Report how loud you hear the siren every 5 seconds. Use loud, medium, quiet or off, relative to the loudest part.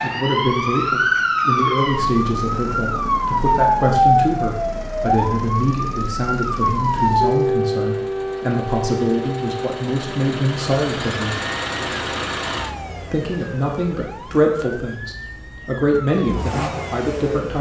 loud, loud, quiet, quiet.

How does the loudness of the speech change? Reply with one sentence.
The volume of the speech stays about the same.